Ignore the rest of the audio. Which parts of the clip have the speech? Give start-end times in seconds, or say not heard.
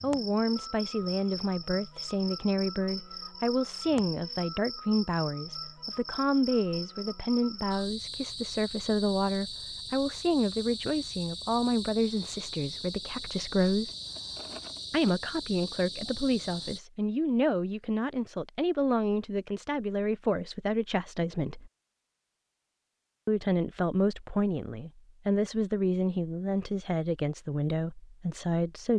0.0-13.9, 14.9-21.7, 23.2-28.9.